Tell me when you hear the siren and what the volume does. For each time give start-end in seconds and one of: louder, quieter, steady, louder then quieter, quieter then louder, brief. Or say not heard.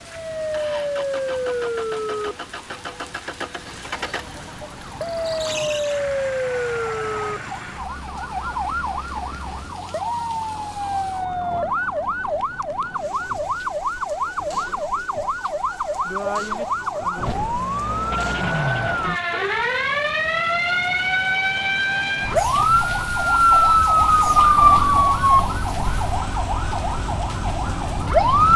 0.0-28.5 louder.